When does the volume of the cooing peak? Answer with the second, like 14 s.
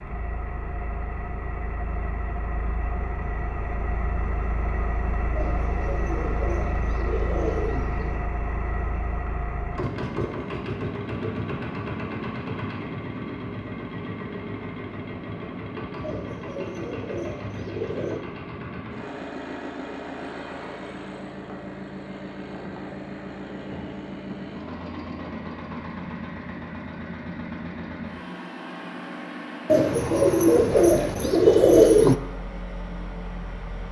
32 s.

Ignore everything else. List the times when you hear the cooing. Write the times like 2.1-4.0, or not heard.
5.3-8.2, 16.0-18.2, 29.6-32.1.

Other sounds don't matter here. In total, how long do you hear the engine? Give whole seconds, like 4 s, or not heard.
34 s.